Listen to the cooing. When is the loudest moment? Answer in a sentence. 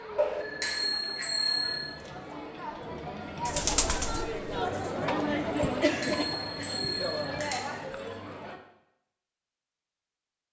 The loudest moment of the cooing is at 4 seconds.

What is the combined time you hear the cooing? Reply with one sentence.
You can hear the cooing for 2 seconds altogether.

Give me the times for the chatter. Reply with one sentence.
The chatter can be heard from 0.0 to 8.6 s.